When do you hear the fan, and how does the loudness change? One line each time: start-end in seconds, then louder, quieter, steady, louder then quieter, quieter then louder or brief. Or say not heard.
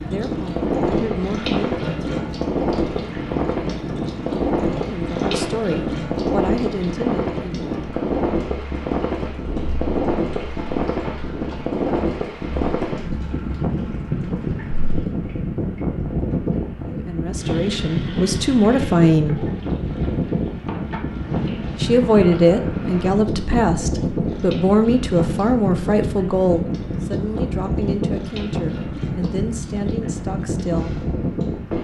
0.0-31.7 steady.